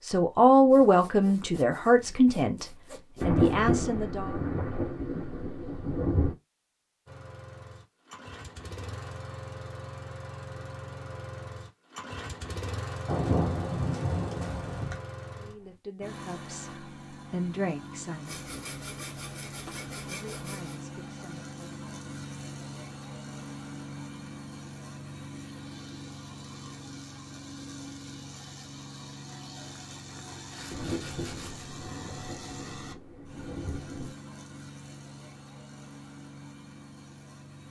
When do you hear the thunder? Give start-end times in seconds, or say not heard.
3.2-6.3, 13.1-14.9, 30.7-34.1.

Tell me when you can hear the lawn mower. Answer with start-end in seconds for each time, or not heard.
7.0-37.6.